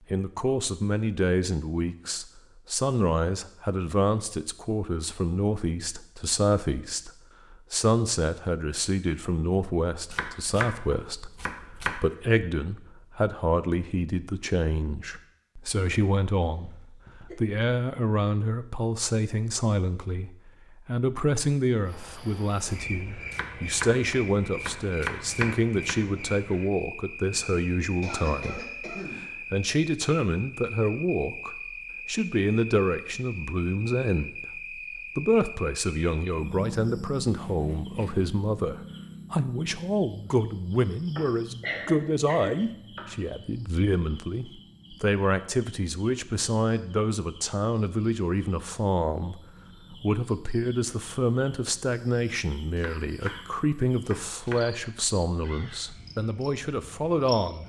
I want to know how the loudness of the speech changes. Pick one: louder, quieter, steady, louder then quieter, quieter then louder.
steady.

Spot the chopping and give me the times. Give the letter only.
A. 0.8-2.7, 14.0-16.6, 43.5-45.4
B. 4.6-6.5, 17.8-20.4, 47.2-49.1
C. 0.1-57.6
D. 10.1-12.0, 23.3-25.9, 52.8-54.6
D.